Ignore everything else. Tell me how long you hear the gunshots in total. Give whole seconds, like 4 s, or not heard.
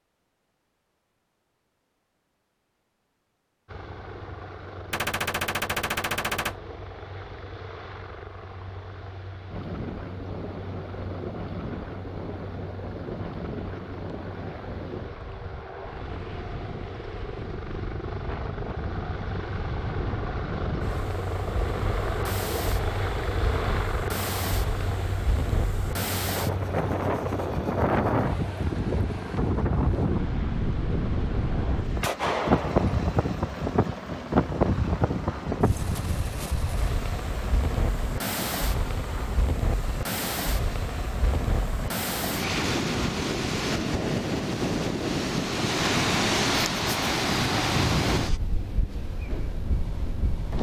3 s.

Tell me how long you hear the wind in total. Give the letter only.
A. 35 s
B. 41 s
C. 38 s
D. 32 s
B.